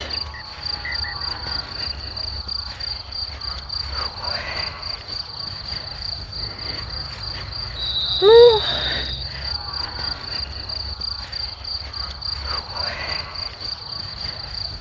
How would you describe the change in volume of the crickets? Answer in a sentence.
The loudness of the crickets goes up, then down.